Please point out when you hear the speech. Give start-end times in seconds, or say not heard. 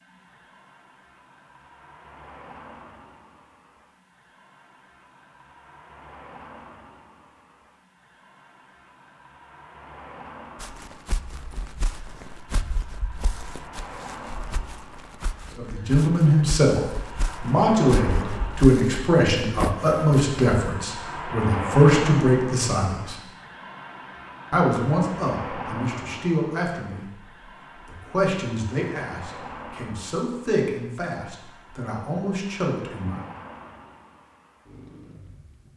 15.6-23.1, 24.5-27.1, 27.9-33.2.